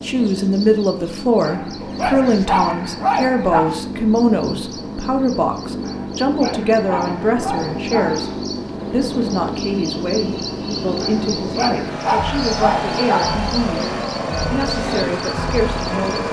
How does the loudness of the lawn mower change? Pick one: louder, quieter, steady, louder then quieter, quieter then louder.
louder.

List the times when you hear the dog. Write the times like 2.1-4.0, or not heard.
1.4-3.8, 5.8-8.4, 11.0-13.4.